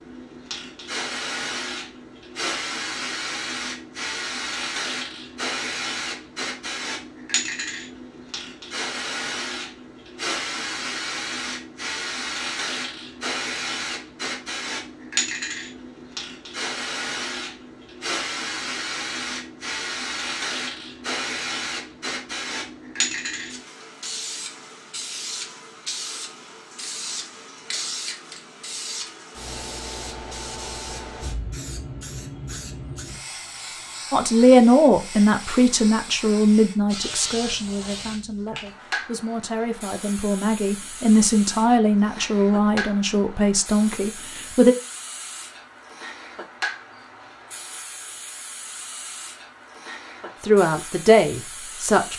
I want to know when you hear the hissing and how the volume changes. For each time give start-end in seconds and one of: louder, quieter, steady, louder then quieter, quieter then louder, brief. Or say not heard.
0.0-52.1 quieter.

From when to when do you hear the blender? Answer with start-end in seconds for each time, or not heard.
not heard.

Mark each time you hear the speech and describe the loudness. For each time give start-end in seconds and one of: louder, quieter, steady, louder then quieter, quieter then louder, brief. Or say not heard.
34.1-44.8 quieter then louder
50.4-52.1 brief.